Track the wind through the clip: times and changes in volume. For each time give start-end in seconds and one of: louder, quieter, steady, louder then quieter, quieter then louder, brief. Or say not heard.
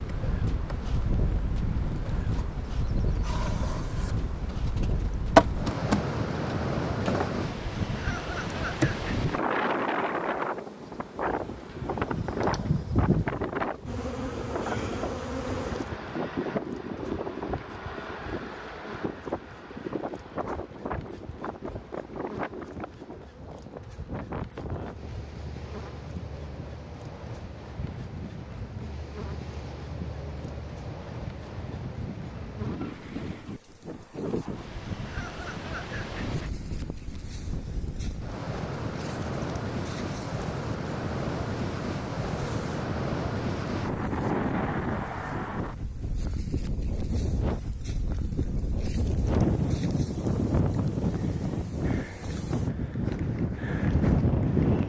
0.0-54.8 quieter then louder.